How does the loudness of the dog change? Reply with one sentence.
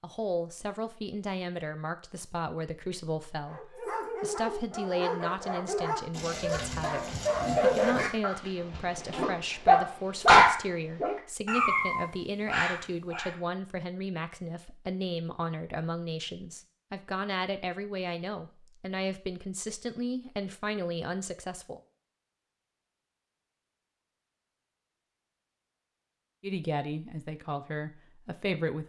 The loudness of the dog goes up, then down.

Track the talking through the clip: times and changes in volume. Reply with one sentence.
The talking can be heard from 0.0 to 21.8 s, at a steady volume; and briefly from 26.4 to 28.8 s.